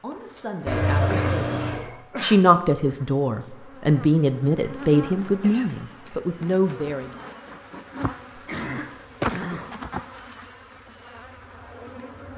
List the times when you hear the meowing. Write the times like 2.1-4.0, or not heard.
0.7-1.8.